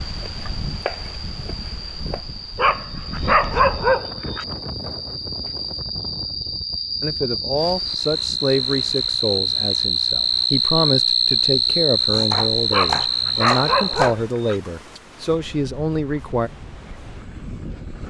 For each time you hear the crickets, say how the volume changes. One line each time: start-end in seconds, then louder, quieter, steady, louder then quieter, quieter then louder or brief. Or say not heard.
0.0-14.1 louder.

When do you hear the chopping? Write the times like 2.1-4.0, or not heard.
0.1-2.2, 12.1-14.2.